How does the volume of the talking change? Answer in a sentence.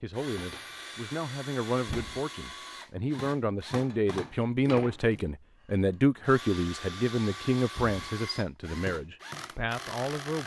The loudness of the talking goes up, then down.